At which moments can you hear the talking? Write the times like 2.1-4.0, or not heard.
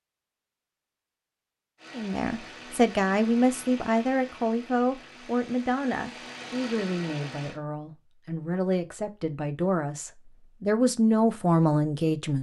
1.9-12.3.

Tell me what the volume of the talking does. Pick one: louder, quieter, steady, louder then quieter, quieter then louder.
quieter then louder.